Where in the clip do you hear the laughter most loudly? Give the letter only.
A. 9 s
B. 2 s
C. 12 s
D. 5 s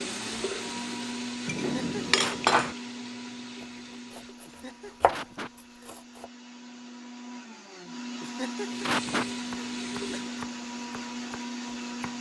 A.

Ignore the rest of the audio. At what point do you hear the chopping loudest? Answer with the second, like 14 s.
5 s.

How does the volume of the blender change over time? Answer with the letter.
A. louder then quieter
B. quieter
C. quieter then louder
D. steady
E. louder
C.